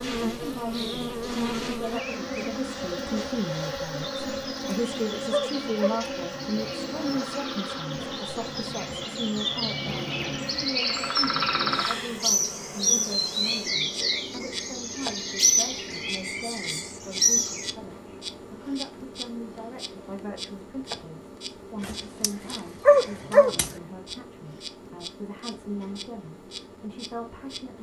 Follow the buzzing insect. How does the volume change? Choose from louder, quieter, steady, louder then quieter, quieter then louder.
quieter.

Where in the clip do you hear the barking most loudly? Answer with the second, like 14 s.
23 s.